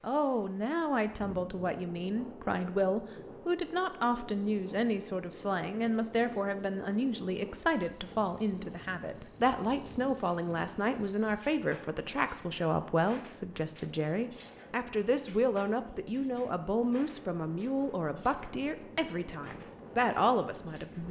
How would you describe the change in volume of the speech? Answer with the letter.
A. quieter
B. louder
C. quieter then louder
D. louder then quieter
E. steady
E.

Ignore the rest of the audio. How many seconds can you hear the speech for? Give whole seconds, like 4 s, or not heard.
21 s.